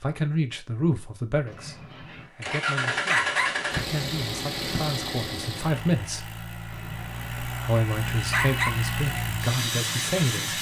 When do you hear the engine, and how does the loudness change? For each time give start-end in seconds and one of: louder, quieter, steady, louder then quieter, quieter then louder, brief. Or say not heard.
2.4-10.5 quieter then louder.